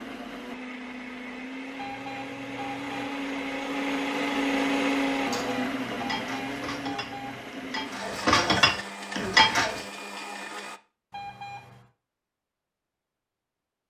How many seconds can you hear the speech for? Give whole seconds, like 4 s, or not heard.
not heard.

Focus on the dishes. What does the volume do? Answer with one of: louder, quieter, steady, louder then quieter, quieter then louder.
louder.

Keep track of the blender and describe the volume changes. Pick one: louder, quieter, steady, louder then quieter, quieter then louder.
louder then quieter.